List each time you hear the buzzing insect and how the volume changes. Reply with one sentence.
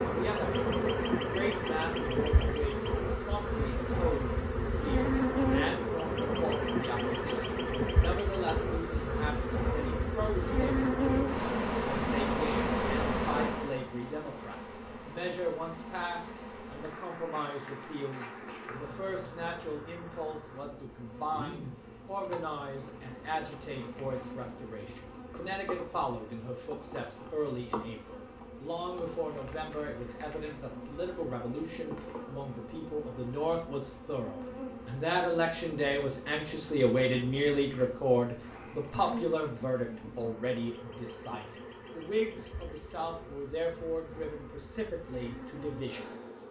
You can hear the buzzing insect from 0.0 to 46.4 s, getting quieter.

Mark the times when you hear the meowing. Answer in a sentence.
The meowing can't be heard in this clip.